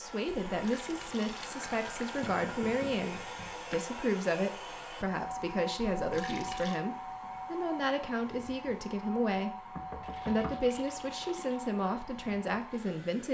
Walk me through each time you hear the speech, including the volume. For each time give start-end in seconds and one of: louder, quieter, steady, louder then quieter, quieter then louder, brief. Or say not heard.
0.0-13.2 steady.